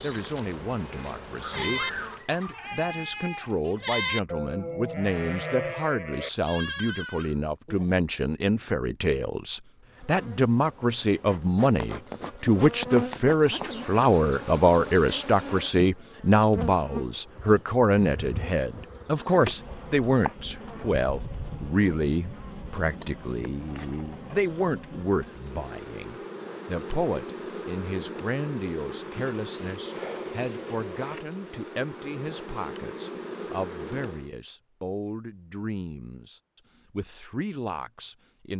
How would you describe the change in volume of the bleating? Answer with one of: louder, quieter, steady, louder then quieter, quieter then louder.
steady.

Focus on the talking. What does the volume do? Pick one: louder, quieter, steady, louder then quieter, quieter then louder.
louder then quieter.